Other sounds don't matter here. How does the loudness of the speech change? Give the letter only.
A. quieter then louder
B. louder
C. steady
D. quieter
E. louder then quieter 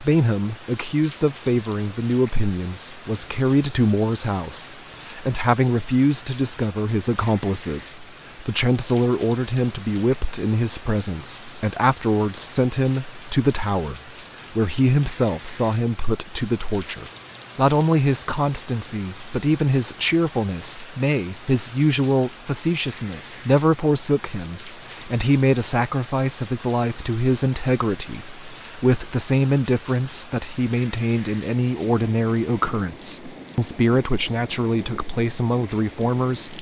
C.